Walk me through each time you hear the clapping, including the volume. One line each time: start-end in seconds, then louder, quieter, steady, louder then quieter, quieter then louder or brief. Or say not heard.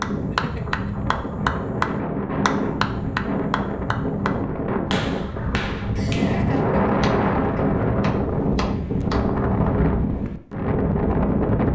0.0-9.2 quieter.